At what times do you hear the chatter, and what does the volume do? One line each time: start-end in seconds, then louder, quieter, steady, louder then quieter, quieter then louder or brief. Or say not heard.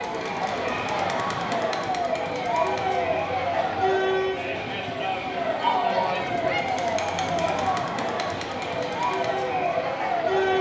0.0-10.5 steady.